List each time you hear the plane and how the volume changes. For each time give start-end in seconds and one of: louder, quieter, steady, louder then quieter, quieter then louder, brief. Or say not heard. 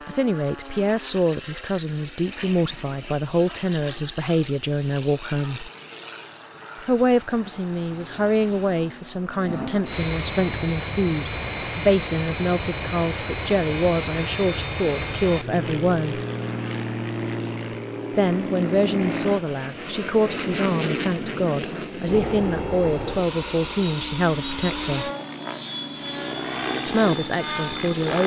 0.0-28.2 louder.